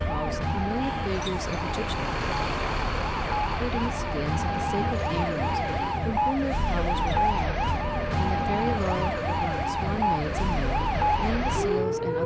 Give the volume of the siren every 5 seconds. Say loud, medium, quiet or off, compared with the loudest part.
medium, loud, loud.